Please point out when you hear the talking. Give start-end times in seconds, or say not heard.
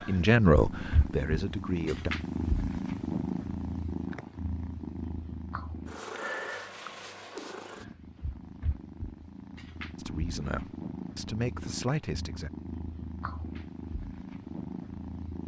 0.0-2.1, 9.9-12.5.